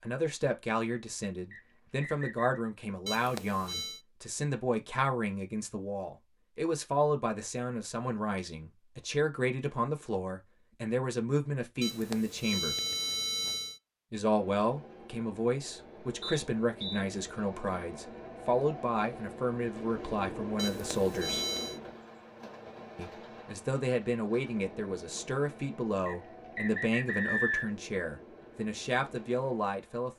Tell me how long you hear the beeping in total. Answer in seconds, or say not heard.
4 s.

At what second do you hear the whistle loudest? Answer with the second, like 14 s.
27 s.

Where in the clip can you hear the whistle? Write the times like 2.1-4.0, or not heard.
1.5-2.6, 16.2-17.1, 26.1-27.6.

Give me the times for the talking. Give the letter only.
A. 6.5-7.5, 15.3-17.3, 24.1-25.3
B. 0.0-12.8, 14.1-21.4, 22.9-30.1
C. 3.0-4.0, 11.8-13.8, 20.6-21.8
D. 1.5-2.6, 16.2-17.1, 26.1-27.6
B.